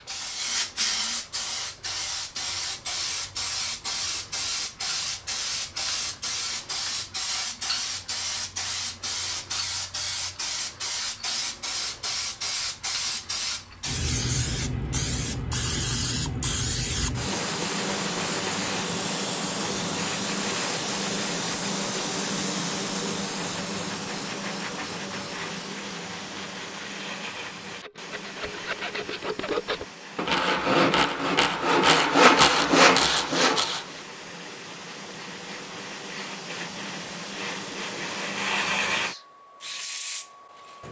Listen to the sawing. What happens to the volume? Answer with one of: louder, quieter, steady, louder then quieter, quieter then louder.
louder.